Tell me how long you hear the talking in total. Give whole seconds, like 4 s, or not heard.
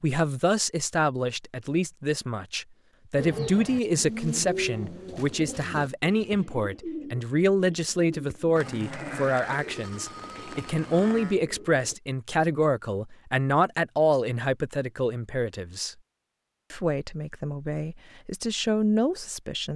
19 s.